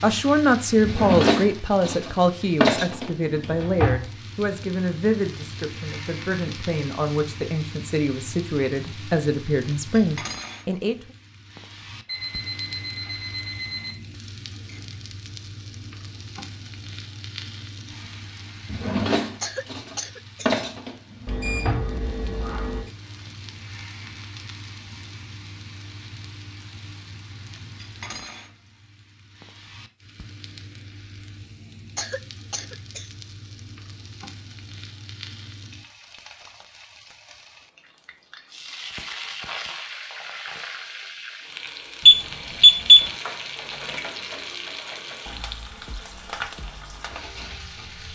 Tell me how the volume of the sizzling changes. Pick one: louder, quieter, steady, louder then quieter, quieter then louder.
quieter then louder.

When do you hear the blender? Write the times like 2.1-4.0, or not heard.
not heard.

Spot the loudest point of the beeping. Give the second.
43 s.